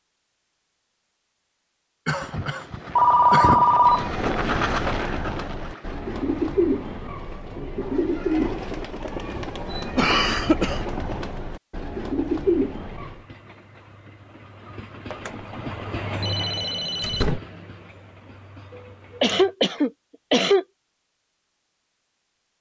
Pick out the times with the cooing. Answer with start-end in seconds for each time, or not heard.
3.8-13.2.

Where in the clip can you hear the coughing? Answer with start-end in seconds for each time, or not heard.
2.0-3.6, 9.9-10.8, 18.8-20.6.